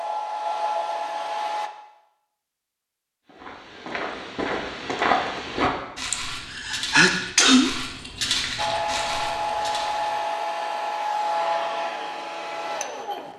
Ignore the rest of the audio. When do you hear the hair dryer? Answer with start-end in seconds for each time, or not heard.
0.0-1.7, 8.6-13.3.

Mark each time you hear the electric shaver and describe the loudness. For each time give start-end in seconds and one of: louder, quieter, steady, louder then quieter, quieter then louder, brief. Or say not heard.
not heard.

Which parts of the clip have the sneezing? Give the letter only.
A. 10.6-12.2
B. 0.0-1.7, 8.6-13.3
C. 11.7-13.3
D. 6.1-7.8
D.